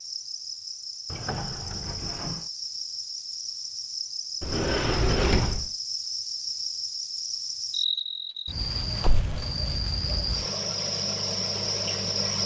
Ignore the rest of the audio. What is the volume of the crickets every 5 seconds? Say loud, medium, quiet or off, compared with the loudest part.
medium, loud, loud.